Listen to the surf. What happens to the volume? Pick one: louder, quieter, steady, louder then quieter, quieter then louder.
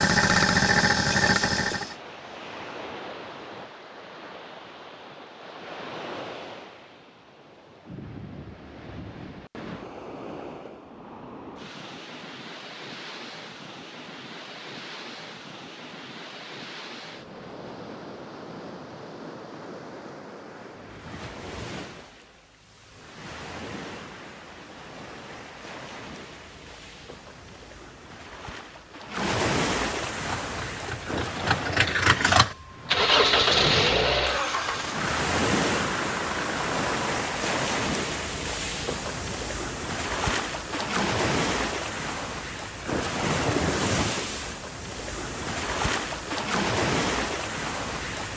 louder.